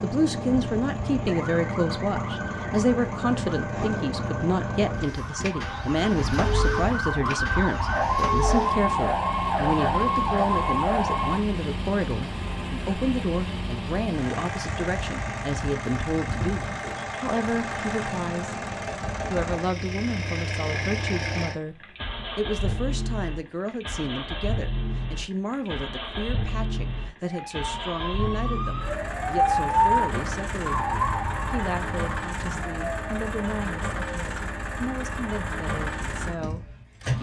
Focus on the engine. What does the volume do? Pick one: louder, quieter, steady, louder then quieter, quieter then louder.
steady.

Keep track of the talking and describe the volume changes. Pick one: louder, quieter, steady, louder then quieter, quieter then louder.
quieter.